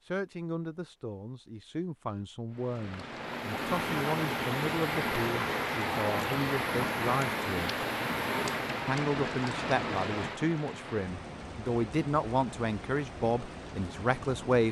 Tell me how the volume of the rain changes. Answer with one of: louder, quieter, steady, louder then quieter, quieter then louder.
quieter.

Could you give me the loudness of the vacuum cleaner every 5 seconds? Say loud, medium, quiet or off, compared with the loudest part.
loud, loud, off.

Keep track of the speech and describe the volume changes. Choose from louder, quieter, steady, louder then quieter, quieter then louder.
louder.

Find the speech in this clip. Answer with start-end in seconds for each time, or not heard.
0.1-7.7, 8.8-14.6.